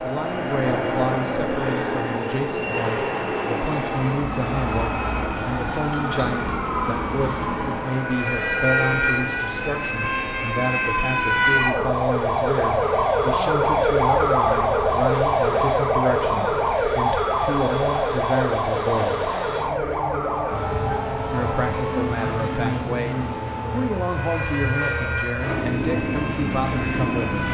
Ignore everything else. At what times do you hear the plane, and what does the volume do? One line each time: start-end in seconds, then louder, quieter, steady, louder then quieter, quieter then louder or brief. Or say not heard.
0.0-27.4 quieter then louder.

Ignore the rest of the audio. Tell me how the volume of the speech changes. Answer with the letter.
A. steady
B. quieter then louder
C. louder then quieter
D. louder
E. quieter
A.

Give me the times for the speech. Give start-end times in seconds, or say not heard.
0.0-19.2, 21.3-27.4.